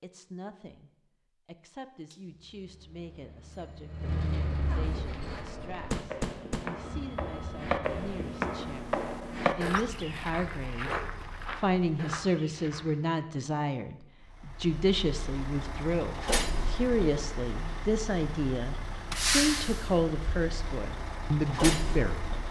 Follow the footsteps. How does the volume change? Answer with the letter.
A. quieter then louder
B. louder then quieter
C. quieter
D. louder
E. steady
B.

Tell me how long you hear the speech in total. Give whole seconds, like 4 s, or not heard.
22 s.